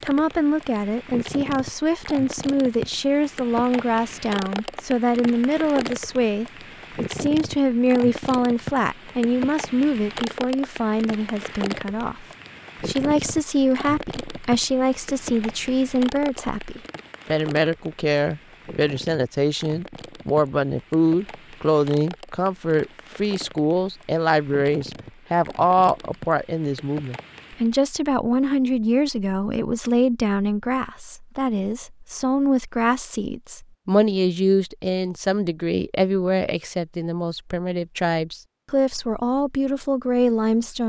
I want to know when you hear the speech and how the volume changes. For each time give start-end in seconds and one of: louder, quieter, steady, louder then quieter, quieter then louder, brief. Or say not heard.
0.0-40.8 steady.